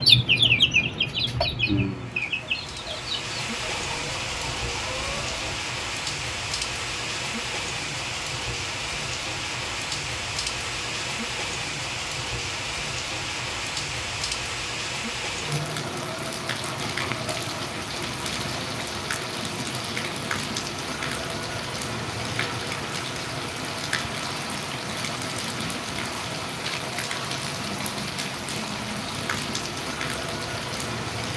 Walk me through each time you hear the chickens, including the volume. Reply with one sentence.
The chickens can be heard from 0.0 to 5.6 s, getting quieter.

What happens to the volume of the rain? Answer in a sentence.
The volume of the rain stays about the same.